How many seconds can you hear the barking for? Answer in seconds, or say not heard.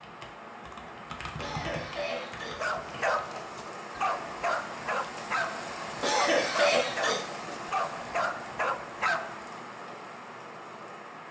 7 s.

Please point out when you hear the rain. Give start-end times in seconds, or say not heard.
0.0-11.2.